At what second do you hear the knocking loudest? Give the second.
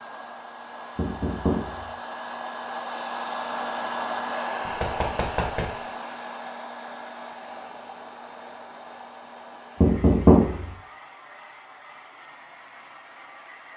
10 s.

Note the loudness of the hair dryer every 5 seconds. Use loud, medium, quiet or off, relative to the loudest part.
loud, medium, quiet.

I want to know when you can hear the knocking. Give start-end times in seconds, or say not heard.
0.9-1.9, 4.7-5.7, 9.8-10.7.